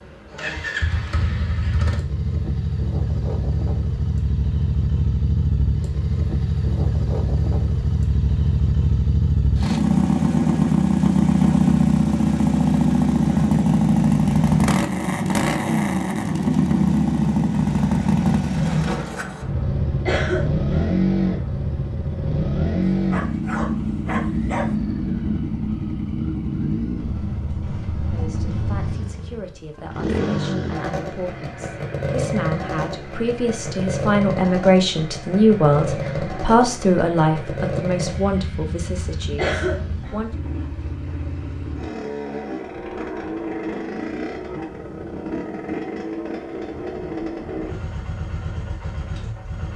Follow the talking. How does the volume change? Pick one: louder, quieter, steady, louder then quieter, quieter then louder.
louder then quieter.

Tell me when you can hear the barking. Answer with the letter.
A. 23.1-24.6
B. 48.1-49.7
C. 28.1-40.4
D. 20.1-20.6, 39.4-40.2
A.